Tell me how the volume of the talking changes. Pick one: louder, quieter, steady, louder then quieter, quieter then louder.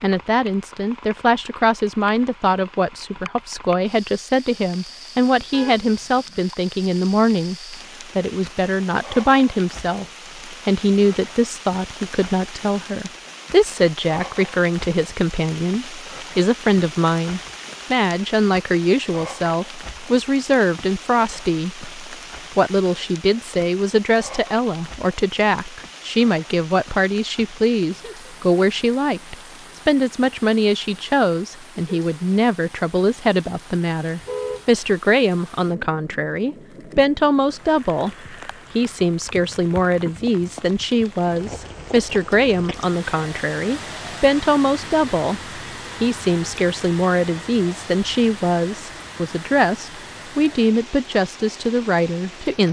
steady.